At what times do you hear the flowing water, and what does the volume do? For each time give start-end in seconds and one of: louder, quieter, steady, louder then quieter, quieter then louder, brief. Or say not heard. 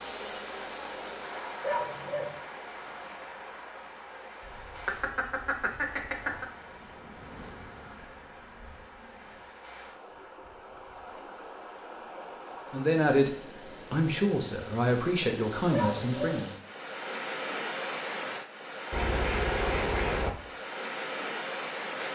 0.0-22.0 quieter then louder.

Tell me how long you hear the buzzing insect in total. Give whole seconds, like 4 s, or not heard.
4 s.